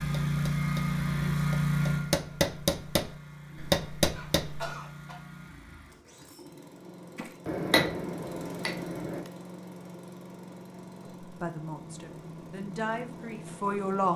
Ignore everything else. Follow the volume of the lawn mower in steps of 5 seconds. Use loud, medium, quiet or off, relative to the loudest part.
loud, quiet, quiet.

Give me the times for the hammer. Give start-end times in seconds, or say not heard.
0.2-4.7, 7.2-9.3.